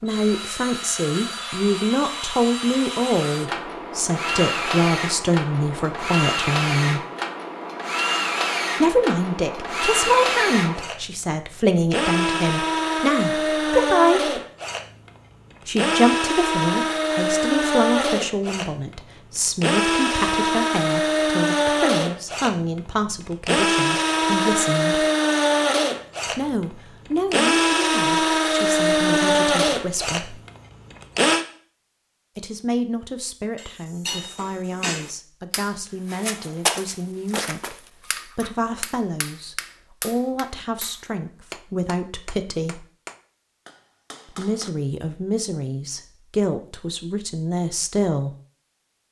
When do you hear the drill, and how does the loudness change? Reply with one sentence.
You can hear the drill from 0.1 to 31.4 s, getting louder.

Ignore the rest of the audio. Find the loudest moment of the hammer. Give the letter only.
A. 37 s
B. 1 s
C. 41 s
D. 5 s
A.